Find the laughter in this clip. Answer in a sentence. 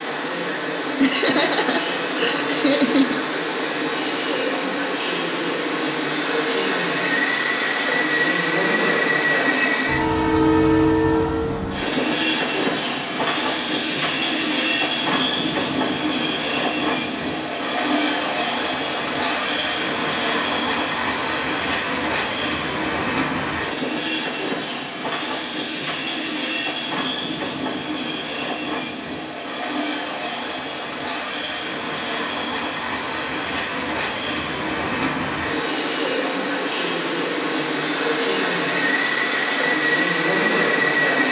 You can hear the laughter from 1.0 to 3.2 s.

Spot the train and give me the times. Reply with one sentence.
The train can be heard from 0.0 to 41.2 s.